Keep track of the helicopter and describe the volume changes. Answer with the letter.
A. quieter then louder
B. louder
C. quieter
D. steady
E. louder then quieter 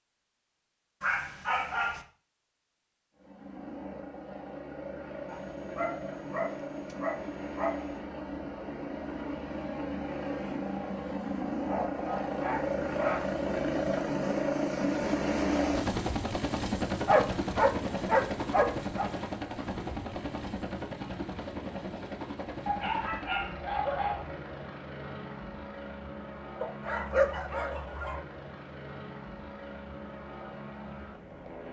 E.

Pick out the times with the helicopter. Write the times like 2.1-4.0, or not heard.
3.1-31.6.